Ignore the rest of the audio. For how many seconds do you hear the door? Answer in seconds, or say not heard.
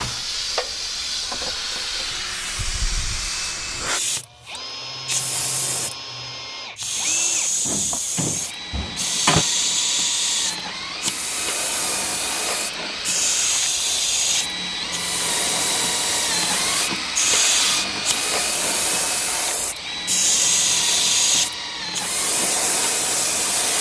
2 s.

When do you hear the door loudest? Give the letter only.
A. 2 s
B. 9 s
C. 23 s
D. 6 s
B.